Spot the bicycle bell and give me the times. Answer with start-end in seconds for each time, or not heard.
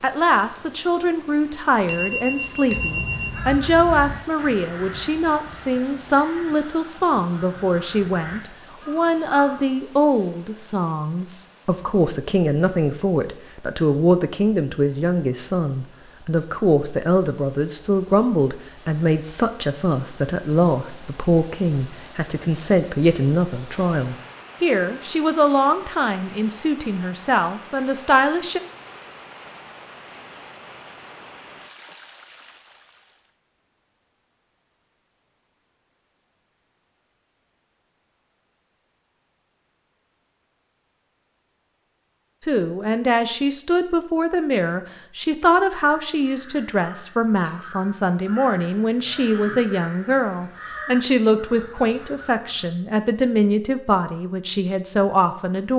1.9-3.4.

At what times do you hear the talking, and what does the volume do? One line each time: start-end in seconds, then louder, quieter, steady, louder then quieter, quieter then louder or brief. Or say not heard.
0.0-28.6 steady
42.5-55.7 steady.